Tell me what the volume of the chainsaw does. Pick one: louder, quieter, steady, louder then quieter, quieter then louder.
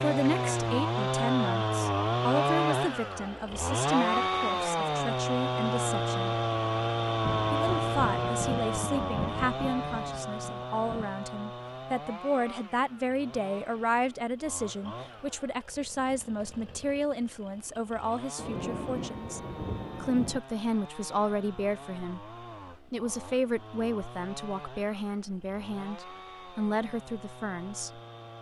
quieter.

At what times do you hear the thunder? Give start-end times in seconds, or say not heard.
7.2-11.0, 18.4-20.4.